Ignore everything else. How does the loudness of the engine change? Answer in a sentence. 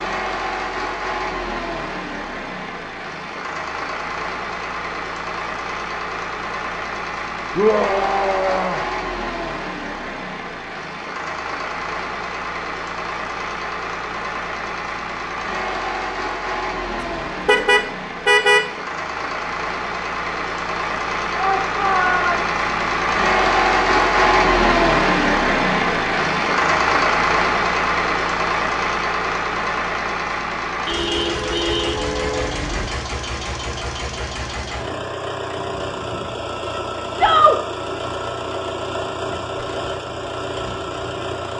The volume of the engine goes up, then down.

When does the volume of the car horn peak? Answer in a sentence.
The loudest moment of the car horn is at 18 seconds.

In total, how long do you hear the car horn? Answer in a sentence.
The car horn can be heard for 3 seconds in total.